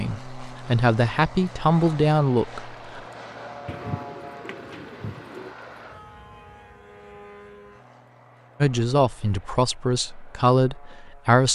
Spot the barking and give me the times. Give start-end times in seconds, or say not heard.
not heard.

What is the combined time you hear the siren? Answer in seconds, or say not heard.
not heard.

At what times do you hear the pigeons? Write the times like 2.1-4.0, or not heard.
3.6-5.5.